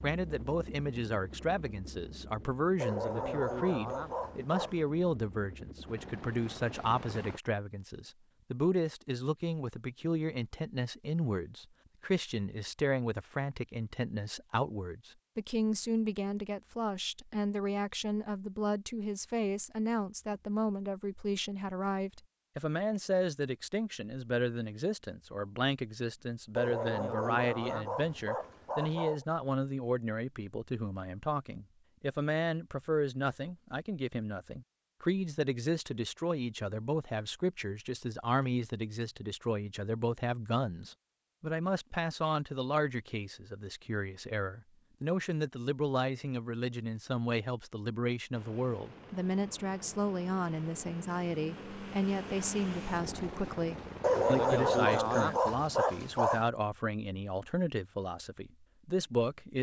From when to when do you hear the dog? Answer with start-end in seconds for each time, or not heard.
2.8-4.8, 26.6-29.2, 54.0-56.5.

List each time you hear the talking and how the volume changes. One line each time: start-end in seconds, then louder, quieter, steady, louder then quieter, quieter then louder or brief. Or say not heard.
0.0-59.5 steady.